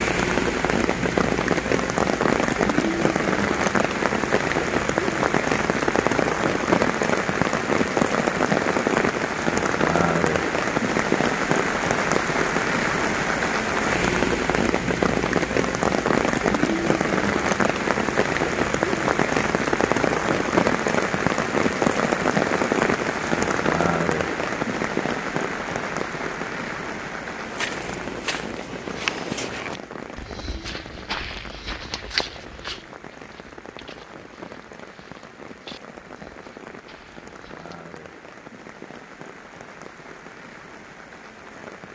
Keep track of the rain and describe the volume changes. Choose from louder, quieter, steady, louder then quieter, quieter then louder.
quieter.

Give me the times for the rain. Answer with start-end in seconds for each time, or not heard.
0.0-41.9.